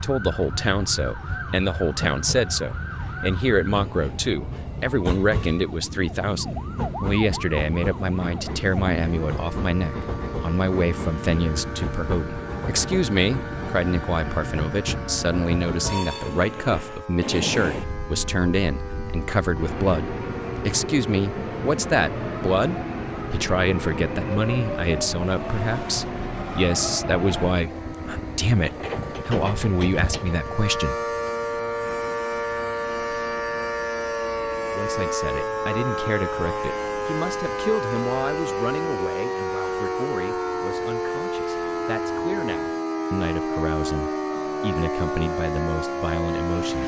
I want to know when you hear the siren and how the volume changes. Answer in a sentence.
The siren can be heard from 0.0 to 46.8 s, getting louder.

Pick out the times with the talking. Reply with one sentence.
The talking can be heard from 0.0 to 30.9 s and from 34.7 to 46.8 s.